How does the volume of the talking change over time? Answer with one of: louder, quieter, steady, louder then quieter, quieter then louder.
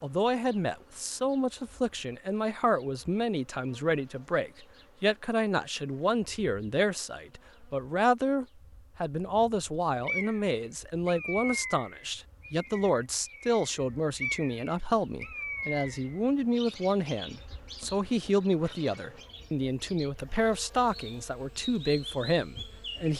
steady.